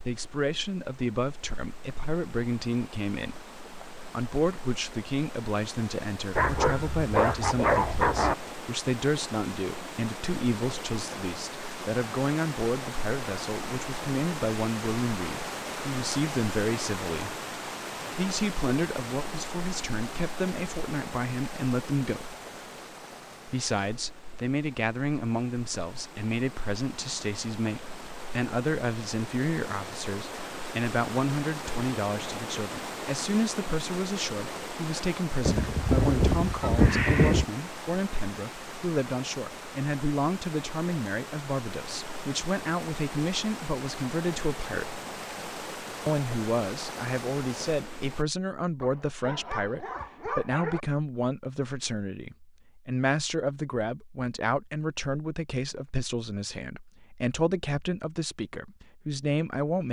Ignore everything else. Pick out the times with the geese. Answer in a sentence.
The geese can be heard from 35.5 to 37.5 s.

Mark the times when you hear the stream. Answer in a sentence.
You can hear the stream from 0.0 to 48.2 s.